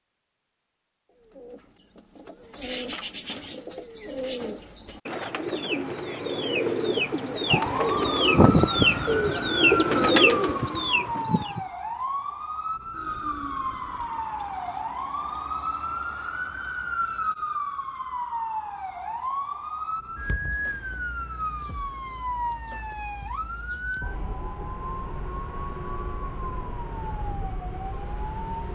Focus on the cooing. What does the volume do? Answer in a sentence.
The volume of the cooing goes up.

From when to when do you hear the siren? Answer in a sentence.
You can hear the siren from 7.5 to 28.7 s.